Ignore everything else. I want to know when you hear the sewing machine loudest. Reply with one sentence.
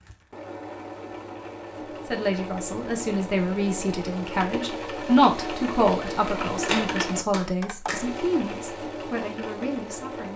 The loudest moment of the sewing machine is at 7 seconds.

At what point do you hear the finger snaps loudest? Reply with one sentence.
The loudest moment of the finger snaps is at 7 seconds.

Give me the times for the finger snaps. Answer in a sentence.
The finger snaps can be heard from 6.7 to 8.1 s.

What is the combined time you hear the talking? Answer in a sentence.
You can hear the talking for 8 seconds altogether.